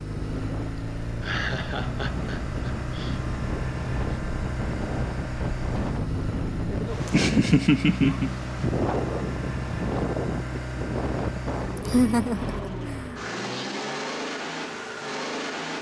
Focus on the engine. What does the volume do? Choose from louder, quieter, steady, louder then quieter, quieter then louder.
steady.